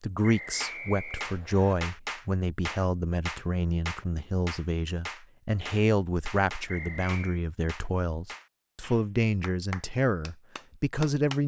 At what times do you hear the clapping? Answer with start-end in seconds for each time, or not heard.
0.6-11.4.